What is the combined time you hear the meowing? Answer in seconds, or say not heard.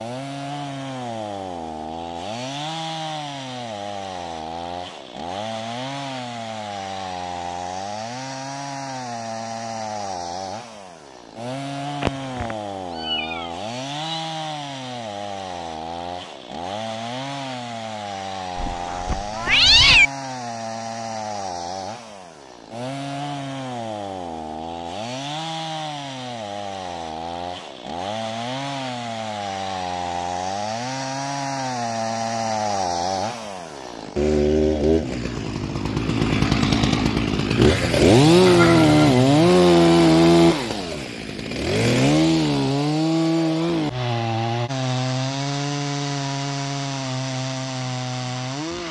6 s.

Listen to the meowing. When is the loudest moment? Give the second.
20 s.